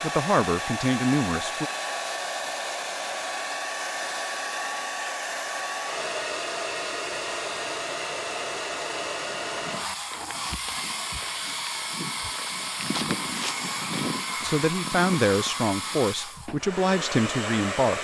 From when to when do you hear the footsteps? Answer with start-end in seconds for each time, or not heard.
9.3-16.0.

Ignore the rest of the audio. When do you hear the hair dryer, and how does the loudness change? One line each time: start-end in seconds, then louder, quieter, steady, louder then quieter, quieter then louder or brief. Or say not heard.
0.0-17.9 steady.